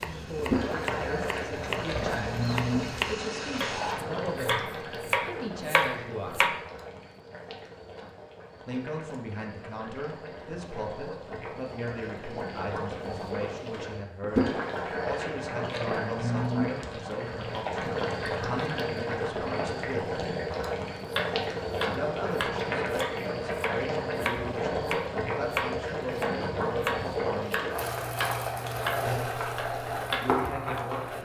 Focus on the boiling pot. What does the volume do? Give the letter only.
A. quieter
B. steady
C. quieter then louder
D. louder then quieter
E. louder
C.